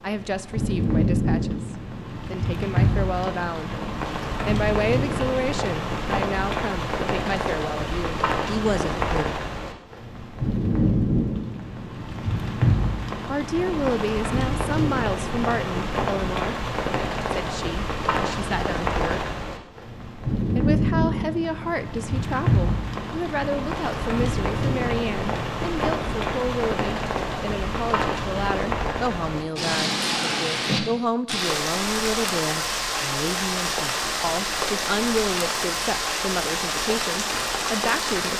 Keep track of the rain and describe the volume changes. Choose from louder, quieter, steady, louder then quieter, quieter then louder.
steady.